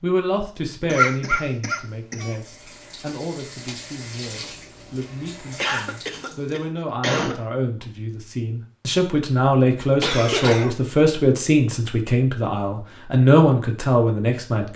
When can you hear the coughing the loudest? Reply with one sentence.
The loudest moment of the coughing is at 1 second.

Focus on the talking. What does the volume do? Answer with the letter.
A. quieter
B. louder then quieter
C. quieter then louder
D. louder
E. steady
C.